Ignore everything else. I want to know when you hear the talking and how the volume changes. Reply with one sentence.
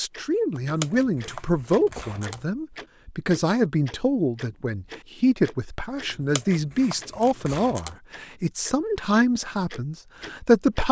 You can hear the talking from 0.0 to 10.8 s, at a steady volume.